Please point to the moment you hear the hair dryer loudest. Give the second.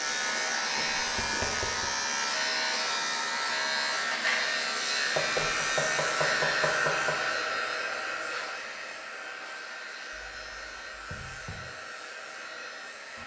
7 s.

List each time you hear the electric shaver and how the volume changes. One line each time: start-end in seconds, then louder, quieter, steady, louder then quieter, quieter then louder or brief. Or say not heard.
0.0-13.2 quieter.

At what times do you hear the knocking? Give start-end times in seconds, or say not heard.
0.8-1.9, 5.2-7.2, 10.1-11.6.